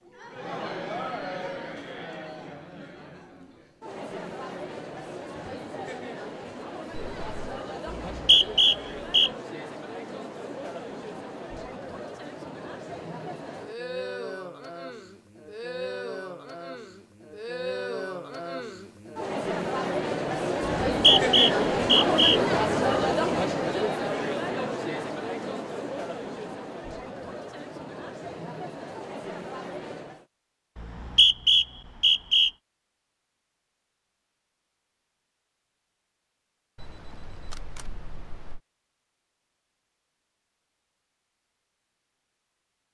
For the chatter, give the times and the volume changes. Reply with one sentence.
The chatter can be heard from 0.0 to 30.2 s, getting louder then quieter.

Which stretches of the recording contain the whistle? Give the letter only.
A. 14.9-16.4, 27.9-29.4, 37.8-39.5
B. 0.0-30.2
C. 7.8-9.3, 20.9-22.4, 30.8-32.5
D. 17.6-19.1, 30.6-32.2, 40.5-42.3
C.